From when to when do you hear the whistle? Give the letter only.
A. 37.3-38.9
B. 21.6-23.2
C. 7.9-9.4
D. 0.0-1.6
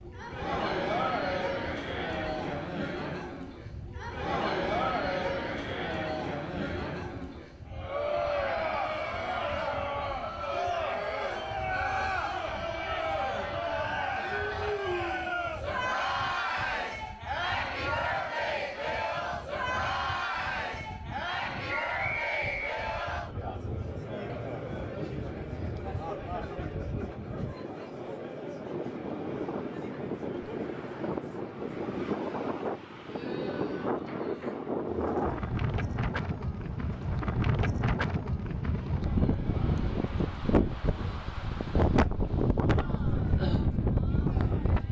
B.